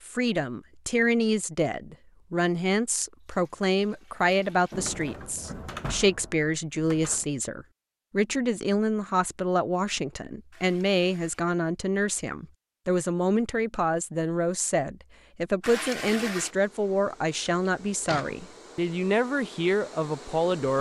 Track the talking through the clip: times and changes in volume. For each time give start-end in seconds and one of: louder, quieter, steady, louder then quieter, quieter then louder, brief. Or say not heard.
0.0-20.7 steady.